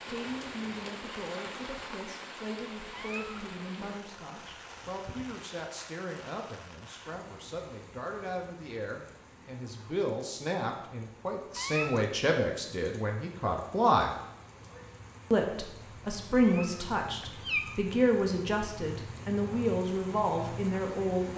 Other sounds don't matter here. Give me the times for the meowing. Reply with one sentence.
The meowing can be heard from 2.9 to 3.5 s, from 11.6 to 12.1 s and from 16.4 to 17.8 s.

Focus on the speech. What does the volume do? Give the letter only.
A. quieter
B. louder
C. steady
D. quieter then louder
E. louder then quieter
B.